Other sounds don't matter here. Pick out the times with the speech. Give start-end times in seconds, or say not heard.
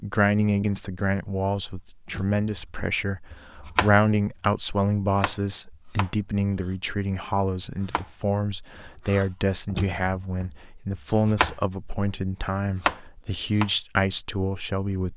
0.0-15.1.